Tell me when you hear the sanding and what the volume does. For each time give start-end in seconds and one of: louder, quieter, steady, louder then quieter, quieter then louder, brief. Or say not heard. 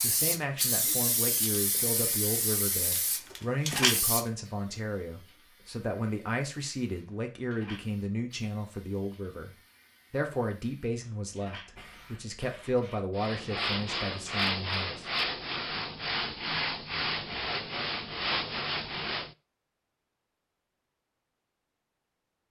13.2-19.4 steady.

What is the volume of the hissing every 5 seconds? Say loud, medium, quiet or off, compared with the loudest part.
loud, quiet, quiet, off, off.